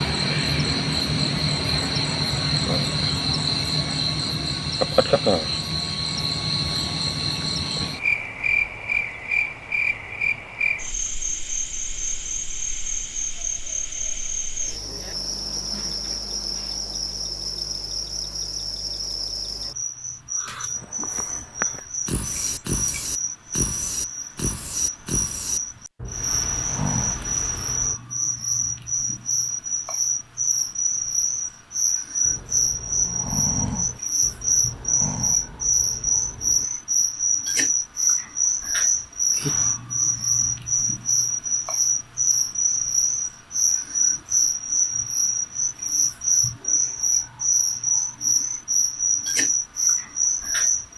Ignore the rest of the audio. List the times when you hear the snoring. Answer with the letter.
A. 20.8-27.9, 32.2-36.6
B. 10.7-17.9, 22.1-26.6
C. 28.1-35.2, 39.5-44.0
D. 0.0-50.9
A.